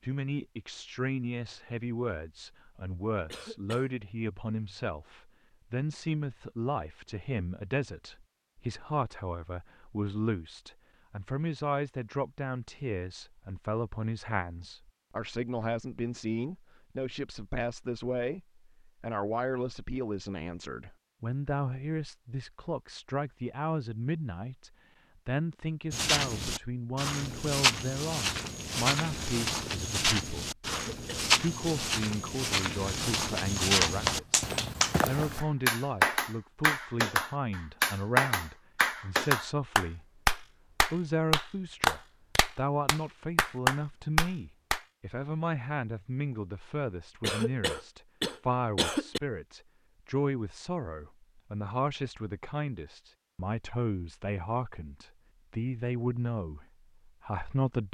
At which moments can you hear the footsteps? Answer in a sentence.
You can hear the footsteps from 25.9 to 35.5 s.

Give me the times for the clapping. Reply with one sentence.
The clapping can be heard from 33.5 to 44.8 s.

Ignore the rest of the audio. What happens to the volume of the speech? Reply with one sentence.
The volume of the speech stays about the same.